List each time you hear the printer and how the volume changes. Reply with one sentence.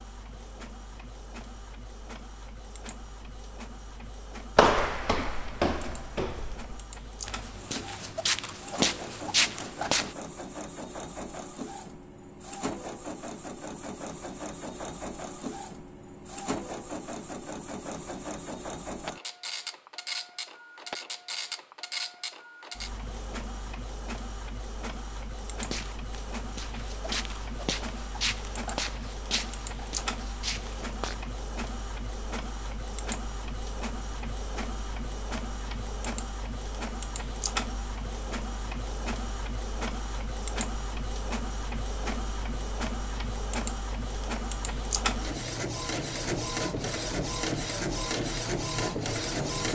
You can hear the printer from 0.0 to 49.6 s, getting louder.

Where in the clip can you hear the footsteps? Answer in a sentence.
You can hear the footsteps from 4.5 to 10.2 s and from 25.6 to 31.1 s.